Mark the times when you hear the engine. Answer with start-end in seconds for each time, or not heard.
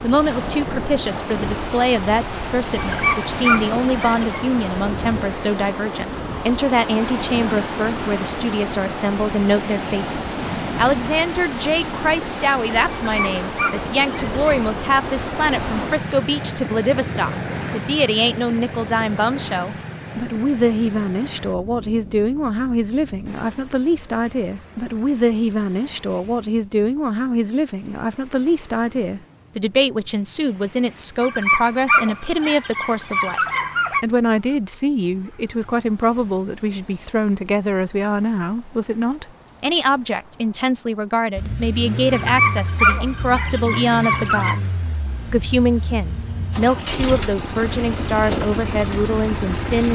41.4-49.9.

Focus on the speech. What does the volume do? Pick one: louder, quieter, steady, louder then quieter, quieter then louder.
steady.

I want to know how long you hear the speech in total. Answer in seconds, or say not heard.
49 s.